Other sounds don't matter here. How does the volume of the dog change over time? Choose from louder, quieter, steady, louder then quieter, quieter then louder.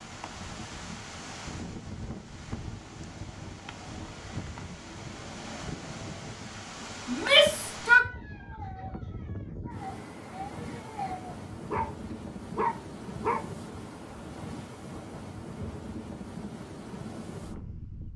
louder.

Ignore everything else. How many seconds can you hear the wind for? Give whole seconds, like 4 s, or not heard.
18 s.